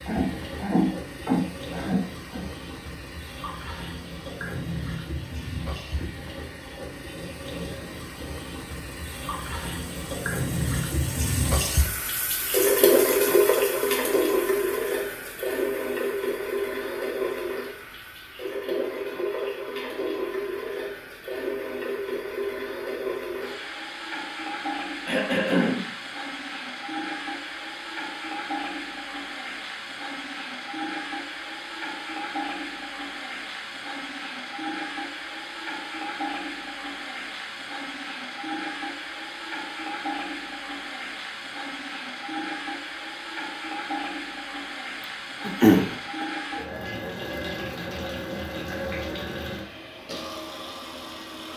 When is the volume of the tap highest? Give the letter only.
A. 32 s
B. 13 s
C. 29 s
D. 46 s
B.